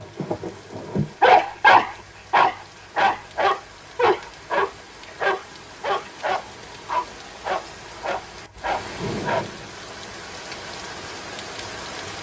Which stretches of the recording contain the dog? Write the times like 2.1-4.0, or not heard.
0.0-9.7.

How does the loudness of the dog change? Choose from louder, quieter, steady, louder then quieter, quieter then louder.
quieter.